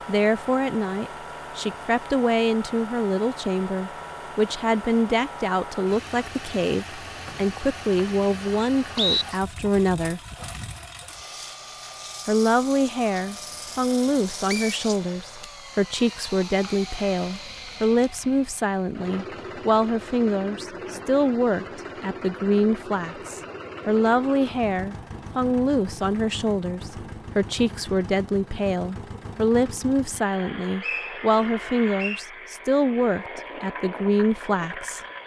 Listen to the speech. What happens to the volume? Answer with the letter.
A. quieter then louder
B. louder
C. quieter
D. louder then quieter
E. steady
E.